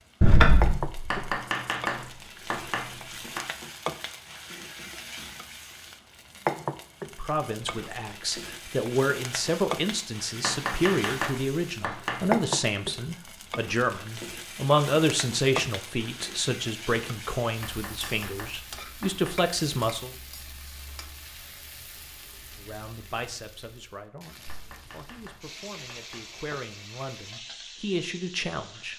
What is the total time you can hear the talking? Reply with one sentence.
You can hear the talking for 19 seconds altogether.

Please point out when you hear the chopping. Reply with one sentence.
You can hear the chopping from 1.1 to 3.5 s, from 10.4 to 12.4 s, from 17.6 to 19.4 s and from 24.4 to 26.3 s.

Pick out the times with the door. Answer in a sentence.
You can hear the door from 0.2 to 1.2 s.